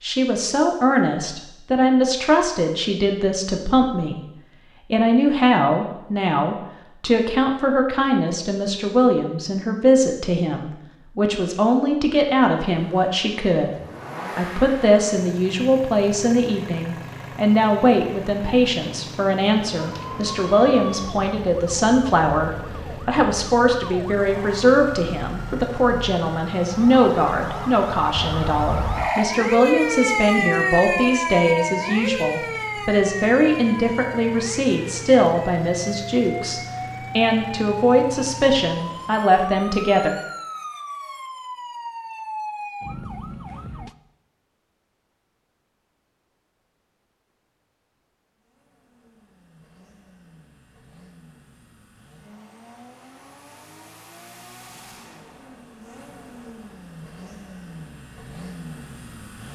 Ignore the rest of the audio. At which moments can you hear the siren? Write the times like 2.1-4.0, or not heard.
19.7-44.0.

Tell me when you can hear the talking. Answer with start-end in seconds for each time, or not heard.
0.0-4.3, 4.9-13.8, 14.3-40.1.